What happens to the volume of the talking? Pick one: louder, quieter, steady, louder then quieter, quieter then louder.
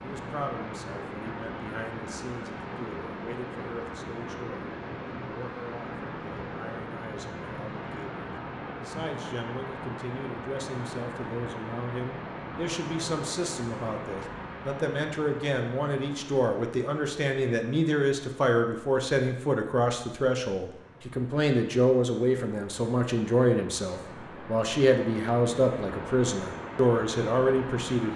louder.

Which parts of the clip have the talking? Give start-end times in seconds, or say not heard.
0.0-28.1.